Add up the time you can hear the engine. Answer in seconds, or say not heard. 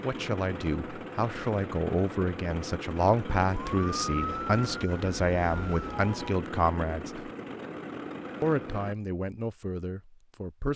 9 s.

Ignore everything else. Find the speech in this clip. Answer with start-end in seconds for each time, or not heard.
0.0-7.3, 8.4-10.7.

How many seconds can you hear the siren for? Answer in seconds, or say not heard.
3 s.